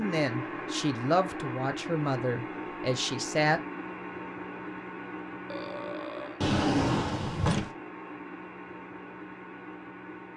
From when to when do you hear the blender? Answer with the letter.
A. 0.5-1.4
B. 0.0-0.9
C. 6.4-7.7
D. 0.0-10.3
D.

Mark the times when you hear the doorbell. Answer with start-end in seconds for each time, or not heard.
not heard.